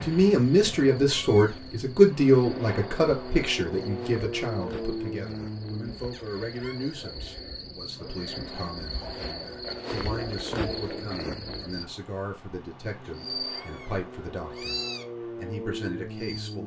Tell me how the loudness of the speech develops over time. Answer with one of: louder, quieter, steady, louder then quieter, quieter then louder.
quieter.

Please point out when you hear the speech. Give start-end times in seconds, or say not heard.
0.0-16.6.